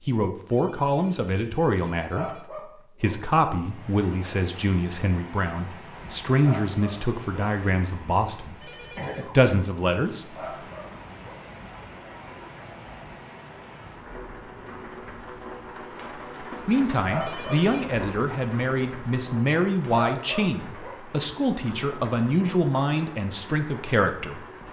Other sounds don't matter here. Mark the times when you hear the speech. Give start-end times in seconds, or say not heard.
0.0-10.7, 16.6-24.4.